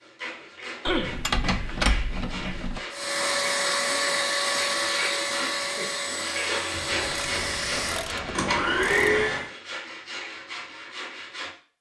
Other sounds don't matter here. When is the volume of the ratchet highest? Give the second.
2 s.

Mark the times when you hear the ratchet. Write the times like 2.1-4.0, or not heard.
0.8-2.8, 6.7-9.2.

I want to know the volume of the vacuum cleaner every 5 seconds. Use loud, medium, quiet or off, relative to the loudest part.
loud, loud, off.